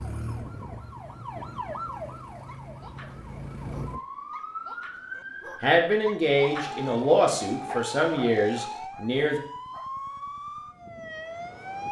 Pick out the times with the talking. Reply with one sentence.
The talking can be heard from 5.6 to 9.4 s.